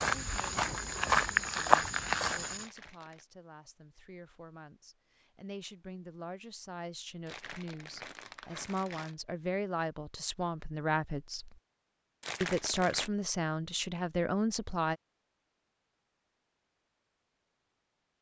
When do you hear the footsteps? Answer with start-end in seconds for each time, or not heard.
0.0-2.6.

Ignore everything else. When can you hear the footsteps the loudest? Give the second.
2 s.